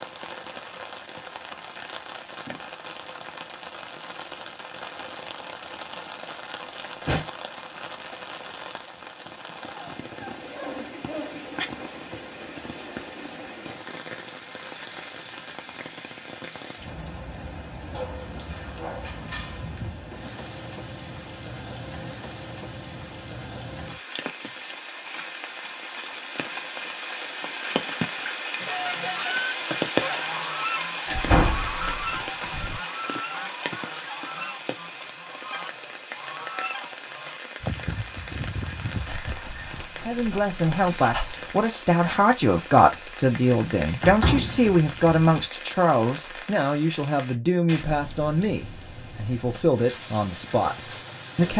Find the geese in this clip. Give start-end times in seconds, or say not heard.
28.6-39.9.